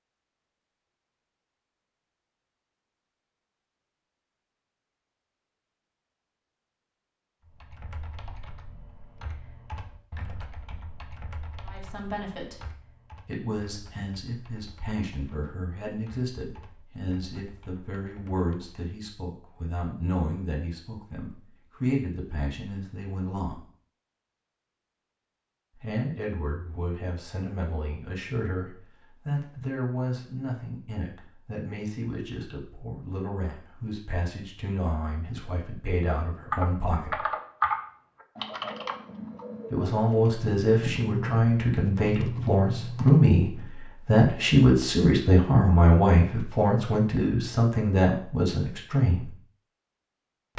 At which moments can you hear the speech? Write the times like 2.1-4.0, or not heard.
11.7-12.7, 13.2-23.6, 25.7-37.2, 39.7-49.3.